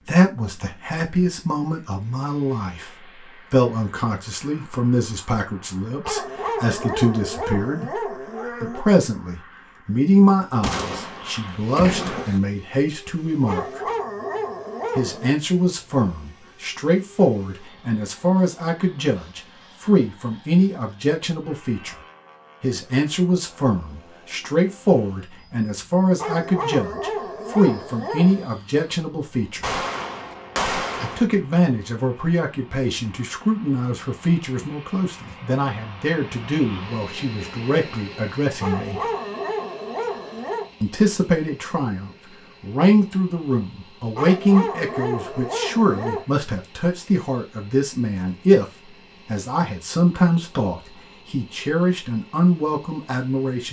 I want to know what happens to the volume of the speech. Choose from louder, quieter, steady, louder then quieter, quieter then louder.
steady.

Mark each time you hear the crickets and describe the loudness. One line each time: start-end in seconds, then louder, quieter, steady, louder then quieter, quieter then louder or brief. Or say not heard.
not heard.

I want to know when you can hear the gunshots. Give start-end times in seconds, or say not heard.
10.6-12.4, 29.6-31.2.